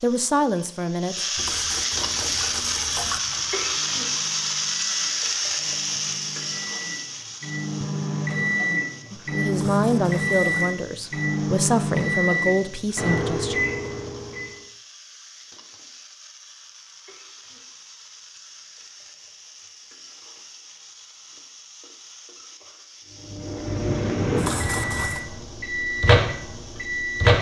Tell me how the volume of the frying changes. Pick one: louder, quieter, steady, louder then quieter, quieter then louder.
quieter.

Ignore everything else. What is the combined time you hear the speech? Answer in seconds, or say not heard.
6 s.